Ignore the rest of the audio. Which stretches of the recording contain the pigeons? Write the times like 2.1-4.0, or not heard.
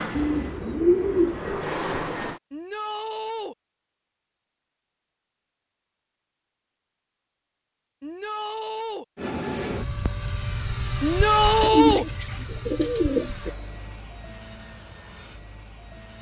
0.1-1.6, 11.6-13.5.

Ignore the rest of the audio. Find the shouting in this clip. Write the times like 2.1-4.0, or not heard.
2.5-3.5, 8.0-9.1, 11.0-12.1.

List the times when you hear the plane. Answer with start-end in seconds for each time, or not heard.
0.0-2.4, 9.2-16.1.